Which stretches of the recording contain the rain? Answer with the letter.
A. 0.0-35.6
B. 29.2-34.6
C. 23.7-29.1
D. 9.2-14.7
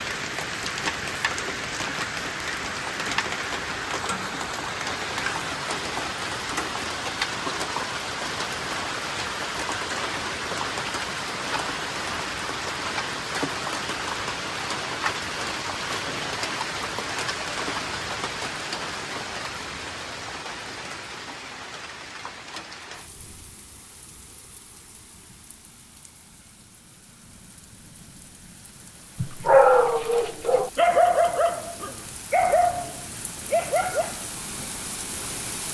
A.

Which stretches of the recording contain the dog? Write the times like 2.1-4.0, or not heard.
29.2-34.6.